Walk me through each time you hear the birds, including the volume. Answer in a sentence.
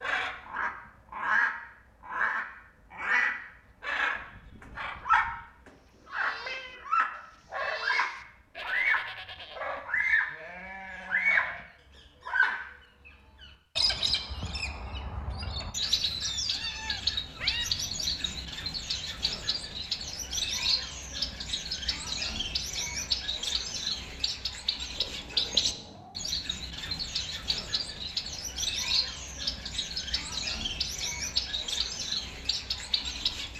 You can hear the birds from 0.0 to 10.4 s, at a steady volume; briefly from 11.1 to 11.6 s; and from 12.2 to 33.5 s, at a steady volume.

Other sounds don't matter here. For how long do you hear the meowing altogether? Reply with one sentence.
You can hear the meowing for 3 seconds altogether.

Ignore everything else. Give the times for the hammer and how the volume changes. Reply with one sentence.
You can't hear the hammer here.